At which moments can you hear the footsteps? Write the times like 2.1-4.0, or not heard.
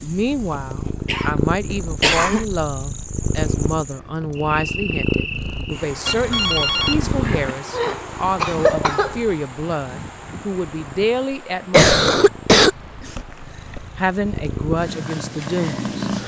not heard.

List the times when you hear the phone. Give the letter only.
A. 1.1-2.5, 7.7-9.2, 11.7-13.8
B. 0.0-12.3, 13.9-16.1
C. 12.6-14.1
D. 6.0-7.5
D.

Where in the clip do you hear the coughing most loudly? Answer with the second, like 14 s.
12 s.